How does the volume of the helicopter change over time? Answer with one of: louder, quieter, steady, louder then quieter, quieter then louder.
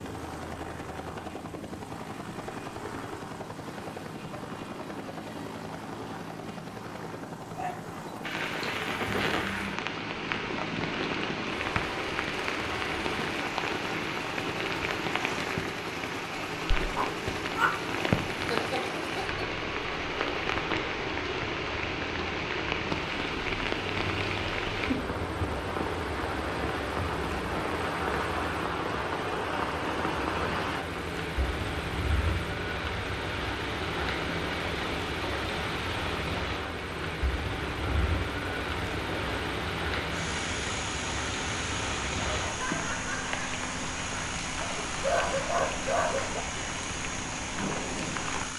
steady.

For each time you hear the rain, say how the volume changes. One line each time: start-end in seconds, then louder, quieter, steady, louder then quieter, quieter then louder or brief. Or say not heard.
8.2-48.5 steady.